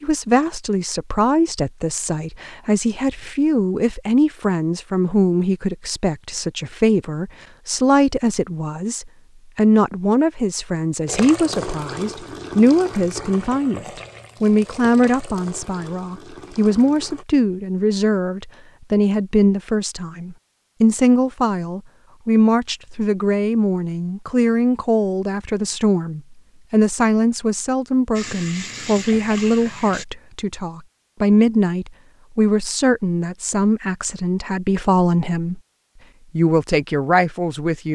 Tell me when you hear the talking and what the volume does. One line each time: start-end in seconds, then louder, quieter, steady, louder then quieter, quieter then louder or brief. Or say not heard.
0.0-35.6 steady
36.4-37.8 brief.